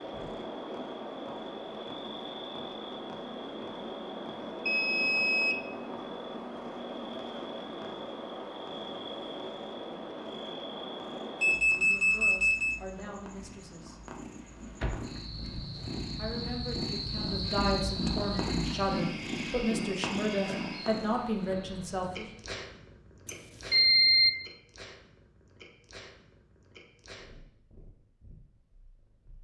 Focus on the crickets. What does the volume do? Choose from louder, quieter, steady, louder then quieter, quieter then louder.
steady.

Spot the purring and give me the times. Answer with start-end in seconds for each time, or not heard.
0.0-29.3.